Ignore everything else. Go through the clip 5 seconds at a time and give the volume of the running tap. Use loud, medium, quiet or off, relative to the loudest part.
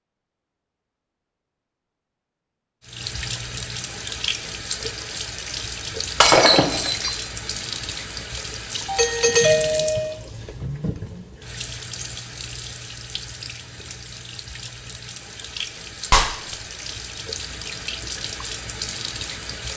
loud, loud, medium, loud.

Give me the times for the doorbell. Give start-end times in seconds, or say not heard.
8.8-10.2.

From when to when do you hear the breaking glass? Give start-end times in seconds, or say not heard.
6.2-7.2, 16.1-16.6.